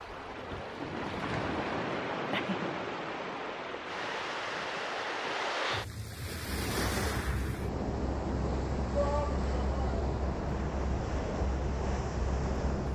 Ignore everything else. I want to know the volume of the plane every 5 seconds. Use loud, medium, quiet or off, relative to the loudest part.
off, loud, loud.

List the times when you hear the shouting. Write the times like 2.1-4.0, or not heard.
8.9-10.1.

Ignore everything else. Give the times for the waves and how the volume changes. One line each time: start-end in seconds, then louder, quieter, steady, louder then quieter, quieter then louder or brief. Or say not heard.
0.0-12.8 steady.